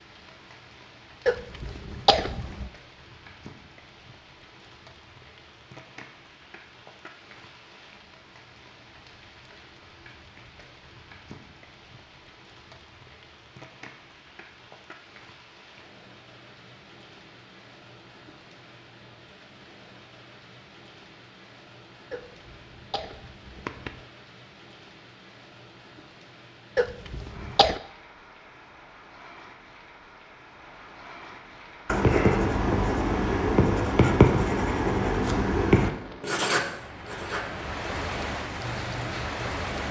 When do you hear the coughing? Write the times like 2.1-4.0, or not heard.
1.2-2.7, 22.1-24.1, 26.8-27.8.